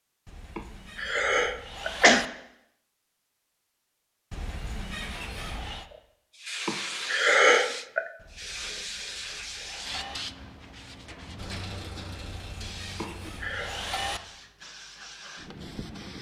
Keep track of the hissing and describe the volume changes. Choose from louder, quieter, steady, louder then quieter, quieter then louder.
quieter.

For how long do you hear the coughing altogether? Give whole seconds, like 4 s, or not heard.
4 s.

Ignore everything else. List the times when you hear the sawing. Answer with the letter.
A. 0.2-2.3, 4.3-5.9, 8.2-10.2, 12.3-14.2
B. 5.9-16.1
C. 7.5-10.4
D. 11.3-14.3
A.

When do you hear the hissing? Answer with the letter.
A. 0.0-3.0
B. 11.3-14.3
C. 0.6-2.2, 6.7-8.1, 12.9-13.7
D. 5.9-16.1
D.